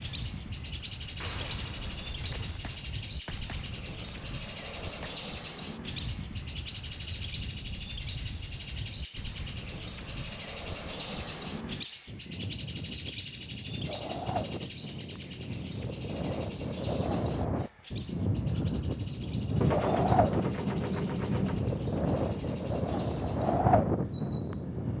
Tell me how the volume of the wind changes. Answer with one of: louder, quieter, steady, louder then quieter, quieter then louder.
louder.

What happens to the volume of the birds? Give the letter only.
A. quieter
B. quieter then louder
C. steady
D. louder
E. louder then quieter
A.